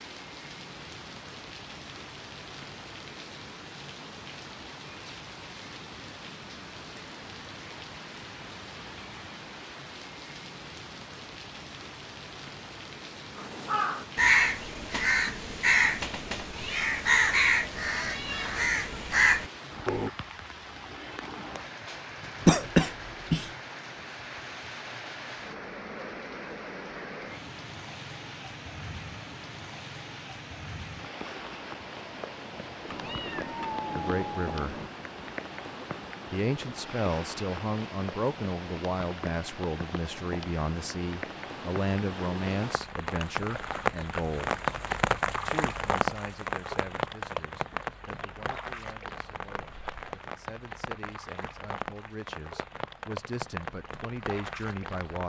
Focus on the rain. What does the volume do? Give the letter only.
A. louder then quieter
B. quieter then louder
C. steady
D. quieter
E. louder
E.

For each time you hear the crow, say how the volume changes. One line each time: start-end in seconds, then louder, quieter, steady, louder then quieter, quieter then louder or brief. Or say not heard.
13.3-20.1 steady.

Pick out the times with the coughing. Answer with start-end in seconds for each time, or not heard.
22.4-23.4.